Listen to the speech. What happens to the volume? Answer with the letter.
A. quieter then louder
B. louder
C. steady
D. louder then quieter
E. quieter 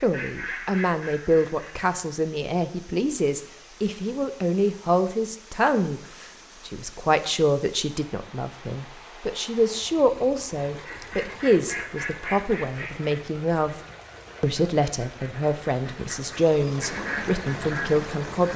C.